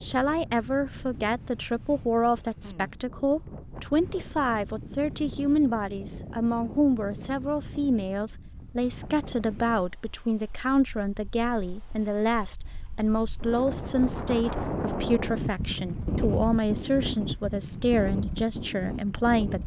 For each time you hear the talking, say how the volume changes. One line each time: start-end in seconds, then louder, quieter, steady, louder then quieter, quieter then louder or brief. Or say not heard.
0.0-19.6 steady.